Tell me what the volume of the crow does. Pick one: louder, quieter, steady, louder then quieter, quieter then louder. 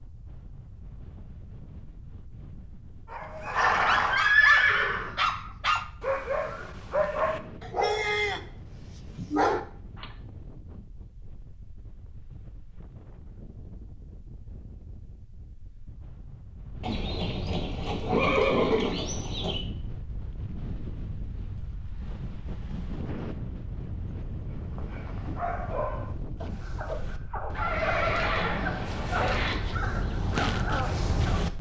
louder.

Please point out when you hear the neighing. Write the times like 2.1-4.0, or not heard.
3.5-5.1, 16.8-19.6, 27.6-29.6.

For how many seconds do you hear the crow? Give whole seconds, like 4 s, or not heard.
5 s.